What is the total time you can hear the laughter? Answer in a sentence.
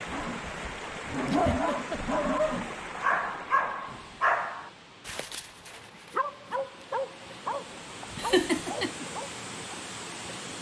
You can hear the laughter for 2 seconds altogether.